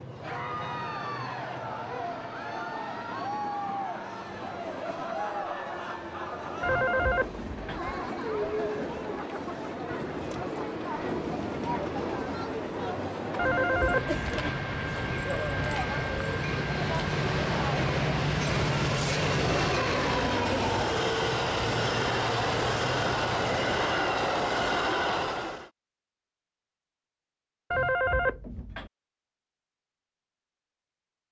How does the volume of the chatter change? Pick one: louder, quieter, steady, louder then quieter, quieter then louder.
steady.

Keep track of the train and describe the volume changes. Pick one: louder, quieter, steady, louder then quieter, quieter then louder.
louder.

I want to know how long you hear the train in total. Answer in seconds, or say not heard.
26 s.